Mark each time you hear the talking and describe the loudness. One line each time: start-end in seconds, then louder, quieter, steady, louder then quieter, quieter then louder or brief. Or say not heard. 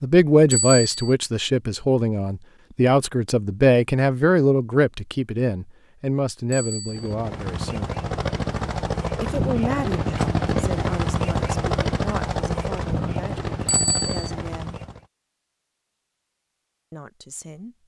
0.0-8.0 quieter
9.2-14.8 quieter
16.9-17.8 brief.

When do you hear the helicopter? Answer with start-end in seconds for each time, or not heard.
6.9-15.1.